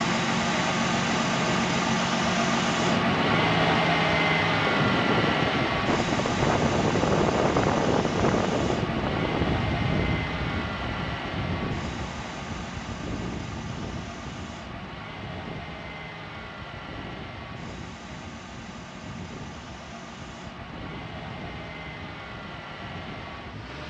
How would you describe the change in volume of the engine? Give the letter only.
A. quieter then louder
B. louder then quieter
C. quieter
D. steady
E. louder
C.